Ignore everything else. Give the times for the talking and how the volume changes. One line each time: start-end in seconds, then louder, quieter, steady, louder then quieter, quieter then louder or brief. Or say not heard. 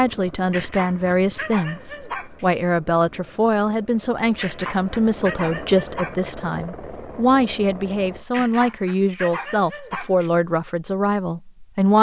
0.0-11.9 steady.